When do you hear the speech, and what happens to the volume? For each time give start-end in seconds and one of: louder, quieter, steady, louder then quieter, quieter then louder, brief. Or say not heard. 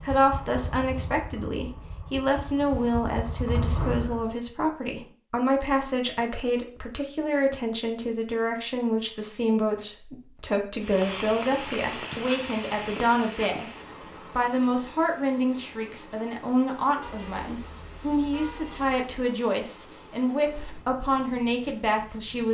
0.1-13.7 steady
14.3-22.5 steady.